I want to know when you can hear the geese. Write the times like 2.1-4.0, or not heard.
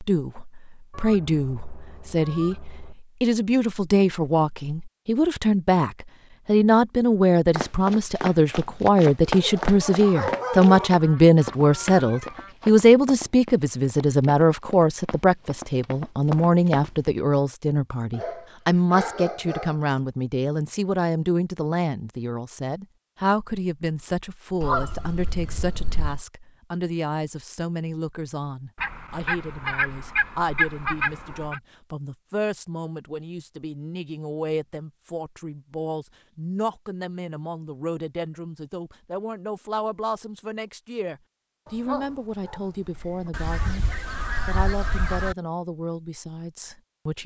0.9-3.0, 10.8-12.6, 24.6-26.2, 28.8-31.6, 43.3-45.4.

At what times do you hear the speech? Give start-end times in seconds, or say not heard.
0.0-43.9, 44.5-47.2.